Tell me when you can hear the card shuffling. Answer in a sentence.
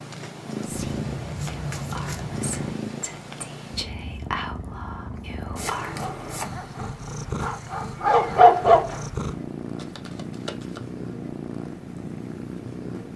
The card shuffling can be heard from 0.7 to 2.8 s, from 5.5 to 6.5 s and from 9.8 to 10.8 s.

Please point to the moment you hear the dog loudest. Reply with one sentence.
The loudest moment of the dog is at 9 seconds.